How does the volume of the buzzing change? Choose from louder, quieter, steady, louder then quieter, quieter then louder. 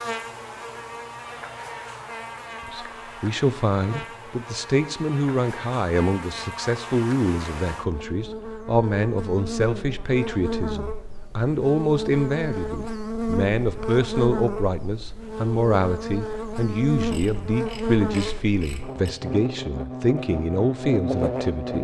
louder.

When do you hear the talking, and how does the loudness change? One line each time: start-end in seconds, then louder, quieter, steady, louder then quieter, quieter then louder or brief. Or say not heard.
2.7-21.7 steady.